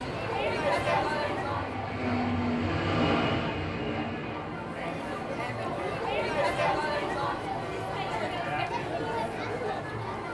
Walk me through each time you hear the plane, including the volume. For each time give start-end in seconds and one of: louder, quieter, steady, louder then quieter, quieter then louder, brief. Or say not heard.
0.0-5.5 louder then quieter.